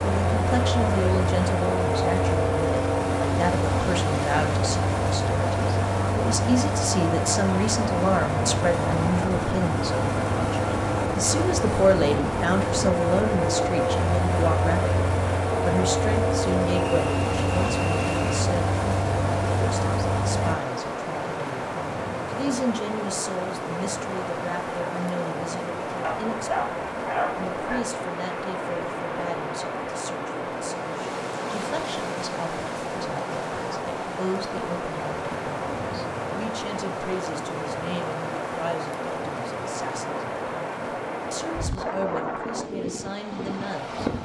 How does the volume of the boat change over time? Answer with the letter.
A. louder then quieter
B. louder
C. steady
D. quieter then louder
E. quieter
C.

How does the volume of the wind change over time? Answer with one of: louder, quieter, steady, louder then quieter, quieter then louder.
steady.